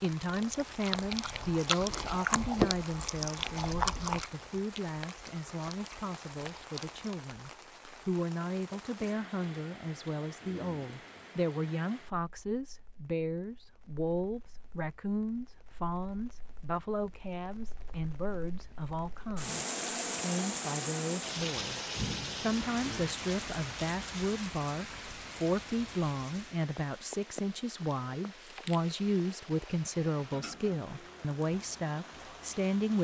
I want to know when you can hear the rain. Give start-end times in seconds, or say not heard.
0.0-33.0.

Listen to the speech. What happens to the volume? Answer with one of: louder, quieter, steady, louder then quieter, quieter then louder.
steady.